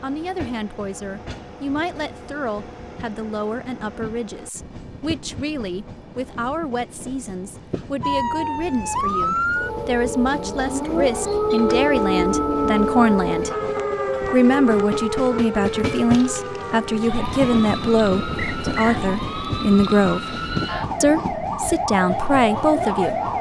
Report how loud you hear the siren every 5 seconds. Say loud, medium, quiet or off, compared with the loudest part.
off, loud, loud, medium, loud.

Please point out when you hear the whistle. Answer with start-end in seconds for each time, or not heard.
18.4-19.0.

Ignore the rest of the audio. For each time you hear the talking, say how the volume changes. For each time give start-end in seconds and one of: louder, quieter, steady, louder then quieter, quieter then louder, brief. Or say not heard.
0.0-13.5 louder
14.3-20.3 steady
21.0-23.1 brief.